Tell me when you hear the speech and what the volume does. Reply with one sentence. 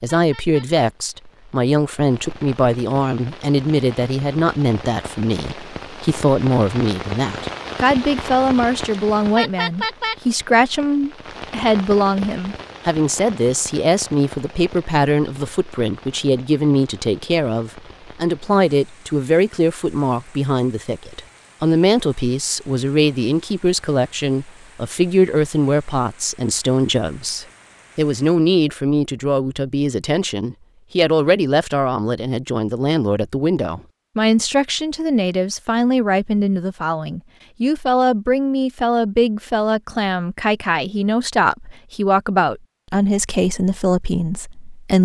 The speech can be heard from 0.0 to 45.0 s, at a steady volume.